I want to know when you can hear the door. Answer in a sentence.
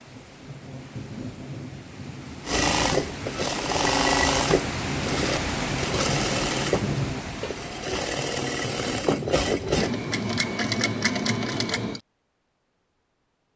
The door can't be heard in this clip.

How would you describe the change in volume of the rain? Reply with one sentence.
The volume of the rain goes up, then down.